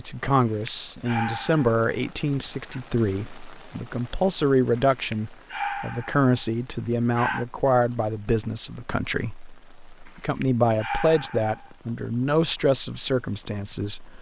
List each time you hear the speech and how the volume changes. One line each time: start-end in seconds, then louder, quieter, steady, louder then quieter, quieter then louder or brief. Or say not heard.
0.0-14.1 steady.